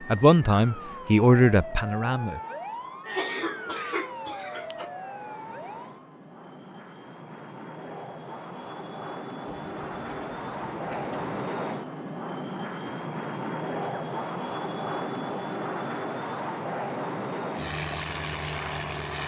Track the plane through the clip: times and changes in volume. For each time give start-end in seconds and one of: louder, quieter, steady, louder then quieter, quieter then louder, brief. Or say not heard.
0.0-19.2 louder.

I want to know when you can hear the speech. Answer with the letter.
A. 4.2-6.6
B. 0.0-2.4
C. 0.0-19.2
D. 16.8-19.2
B.